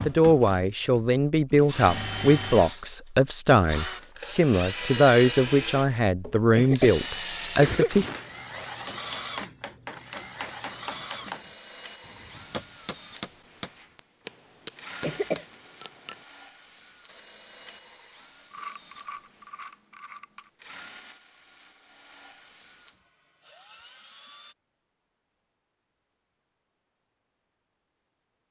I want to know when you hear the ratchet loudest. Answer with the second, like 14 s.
19 s.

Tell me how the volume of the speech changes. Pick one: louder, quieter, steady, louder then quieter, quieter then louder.
steady.